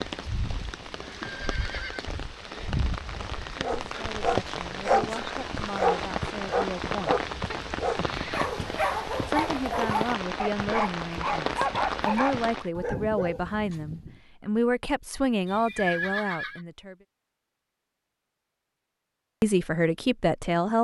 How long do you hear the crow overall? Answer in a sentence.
You can't hear the crow here.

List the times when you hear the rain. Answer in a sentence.
You can hear the rain from 0.0 to 12.7 s.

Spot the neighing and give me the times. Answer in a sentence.
You can hear the neighing from 1.2 to 2.0 s, from 7.3 to 8.4 s and from 15.4 to 16.6 s.